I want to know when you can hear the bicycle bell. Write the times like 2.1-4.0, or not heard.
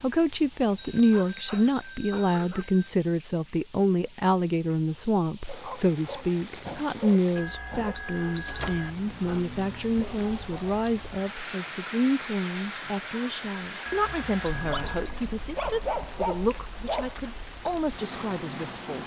0.8-3.0, 7.3-8.9, 13.8-15.2.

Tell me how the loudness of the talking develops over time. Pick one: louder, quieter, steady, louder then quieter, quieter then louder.
quieter.